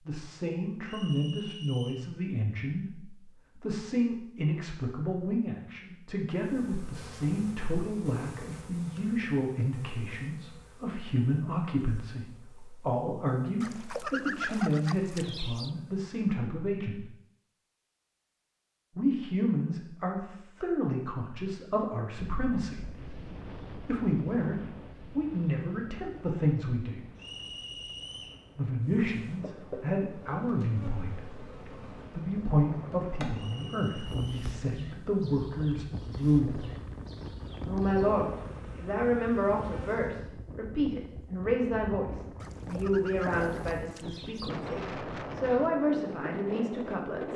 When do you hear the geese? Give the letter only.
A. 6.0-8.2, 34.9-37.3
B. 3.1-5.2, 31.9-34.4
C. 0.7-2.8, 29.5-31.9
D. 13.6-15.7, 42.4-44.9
D.